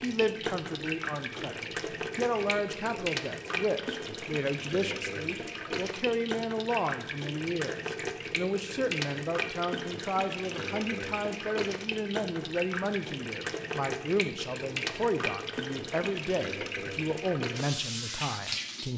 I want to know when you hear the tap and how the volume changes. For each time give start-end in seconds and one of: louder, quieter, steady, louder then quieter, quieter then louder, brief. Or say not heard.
0.0-18.9 steady.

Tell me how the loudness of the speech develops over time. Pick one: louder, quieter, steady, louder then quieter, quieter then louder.
steady.